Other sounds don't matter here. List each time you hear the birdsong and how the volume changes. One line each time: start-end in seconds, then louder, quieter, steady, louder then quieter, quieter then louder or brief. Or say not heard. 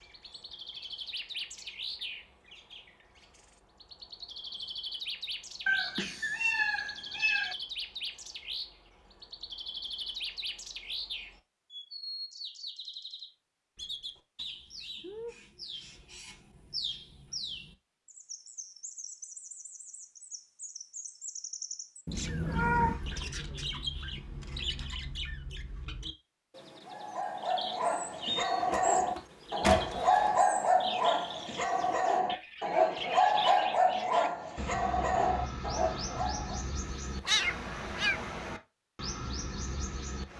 0.0-40.3 steady.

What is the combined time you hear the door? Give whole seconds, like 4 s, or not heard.
2 s.